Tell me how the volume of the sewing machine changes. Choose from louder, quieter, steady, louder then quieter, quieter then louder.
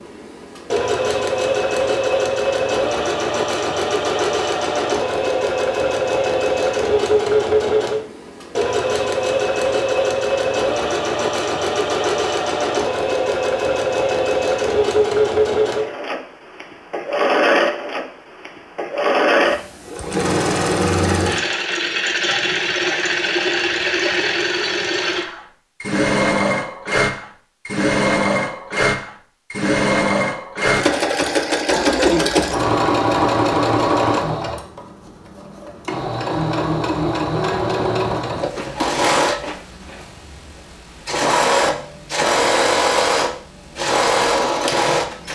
steady.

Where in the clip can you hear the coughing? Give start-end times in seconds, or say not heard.
31.6-32.6.